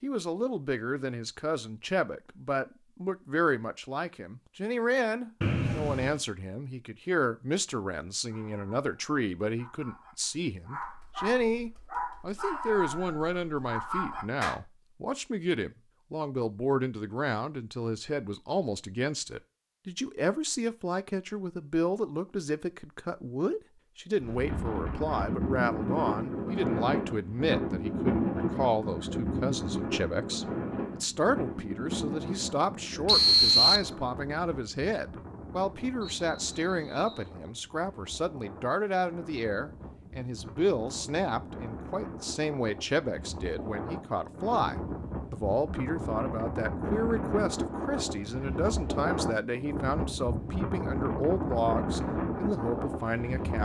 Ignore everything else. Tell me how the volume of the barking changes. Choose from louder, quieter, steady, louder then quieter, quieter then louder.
louder.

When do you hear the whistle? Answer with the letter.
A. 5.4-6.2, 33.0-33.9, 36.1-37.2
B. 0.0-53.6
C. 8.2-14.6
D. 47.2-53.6
A.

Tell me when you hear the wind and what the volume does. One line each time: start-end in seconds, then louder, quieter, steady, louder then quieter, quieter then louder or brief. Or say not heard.
24.2-53.6 quieter then louder.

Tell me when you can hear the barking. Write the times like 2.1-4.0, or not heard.
8.2-14.6.